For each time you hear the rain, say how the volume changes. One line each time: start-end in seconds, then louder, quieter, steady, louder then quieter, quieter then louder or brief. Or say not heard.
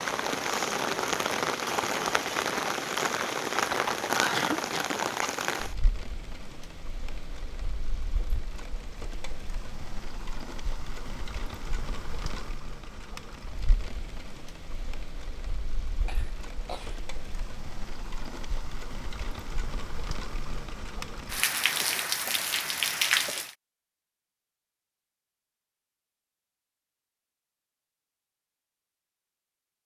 0.0-23.6 quieter then louder.